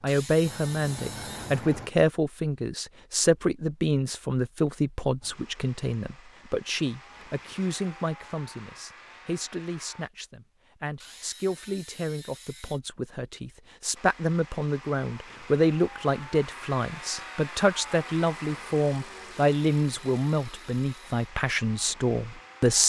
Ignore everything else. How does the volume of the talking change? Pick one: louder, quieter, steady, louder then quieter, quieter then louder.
quieter then louder.